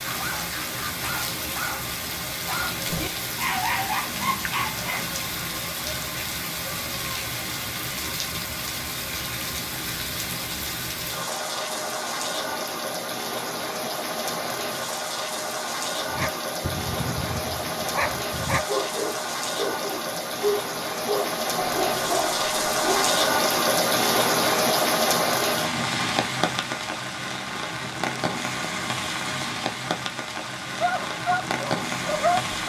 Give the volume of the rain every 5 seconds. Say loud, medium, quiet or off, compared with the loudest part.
medium, medium, medium, medium, loud, loud, medium.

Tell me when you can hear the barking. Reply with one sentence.
The barking can be heard from 0.0 to 5.2 s, from 16.1 to 23.2 s and from 30.8 to 32.5 s.